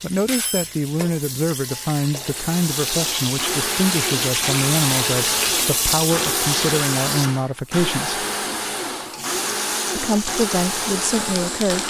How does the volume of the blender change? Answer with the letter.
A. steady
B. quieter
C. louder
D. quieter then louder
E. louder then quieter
A.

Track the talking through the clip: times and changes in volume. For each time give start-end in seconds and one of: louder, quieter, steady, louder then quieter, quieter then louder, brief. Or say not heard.
0.0-8.2 steady
9.9-11.8 brief.